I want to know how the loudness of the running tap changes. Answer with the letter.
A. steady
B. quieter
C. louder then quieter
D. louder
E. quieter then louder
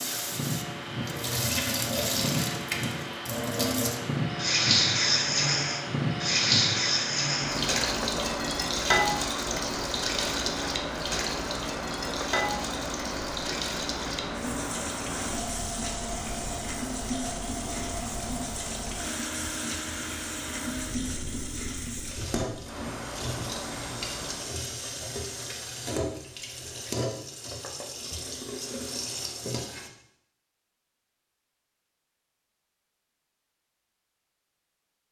B.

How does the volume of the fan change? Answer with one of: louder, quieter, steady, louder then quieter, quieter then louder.
quieter.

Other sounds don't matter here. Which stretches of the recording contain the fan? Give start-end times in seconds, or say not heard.
0.0-24.6.